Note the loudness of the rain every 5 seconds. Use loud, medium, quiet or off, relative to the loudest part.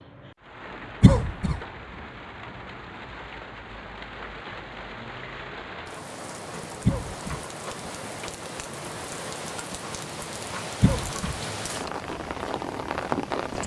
medium, medium, loud.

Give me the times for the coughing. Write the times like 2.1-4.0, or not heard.
1.0-1.6, 6.8-7.4, 10.8-11.3.